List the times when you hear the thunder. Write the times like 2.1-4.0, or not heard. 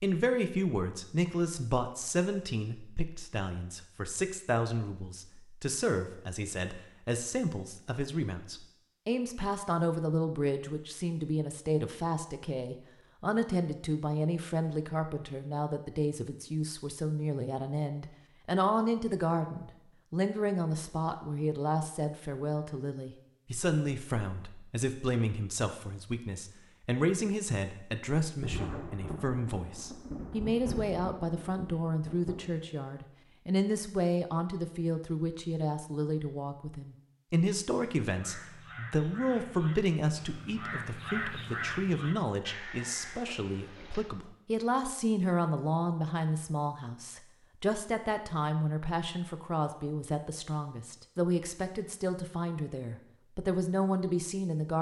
28.4-32.8.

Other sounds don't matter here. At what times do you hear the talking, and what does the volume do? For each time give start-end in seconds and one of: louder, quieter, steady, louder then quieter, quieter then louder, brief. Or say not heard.
0.0-54.7 steady.